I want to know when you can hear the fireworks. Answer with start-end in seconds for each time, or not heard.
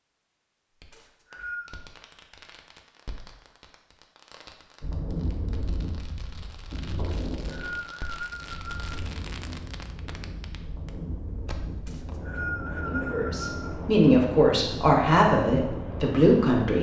0.8-12.2.